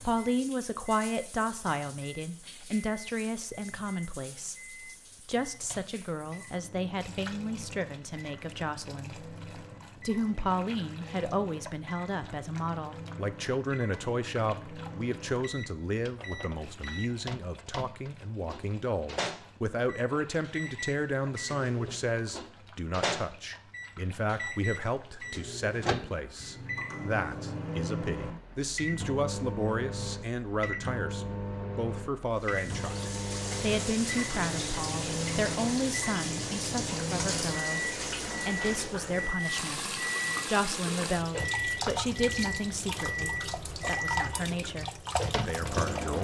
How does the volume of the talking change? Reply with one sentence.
The loudness of the talking stays about the same.